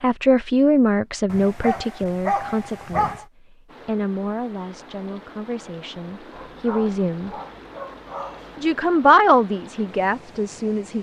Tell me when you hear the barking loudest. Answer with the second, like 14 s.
2 s.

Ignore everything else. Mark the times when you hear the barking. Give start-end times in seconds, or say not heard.
1.2-3.2, 6.3-8.8.